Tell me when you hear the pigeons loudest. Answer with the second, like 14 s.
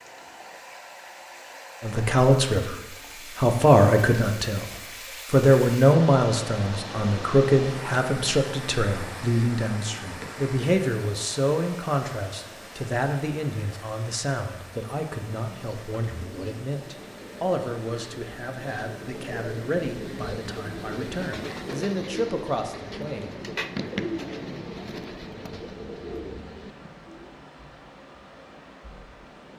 24 s.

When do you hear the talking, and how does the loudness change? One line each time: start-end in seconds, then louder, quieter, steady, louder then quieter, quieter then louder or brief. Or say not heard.
1.8-4.7 brief
5.3-23.4 quieter.